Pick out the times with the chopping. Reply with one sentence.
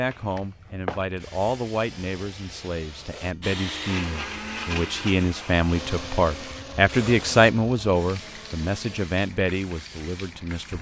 The chopping can't be heard in this clip.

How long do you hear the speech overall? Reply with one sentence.
The speech can be heard for 11 seconds in total.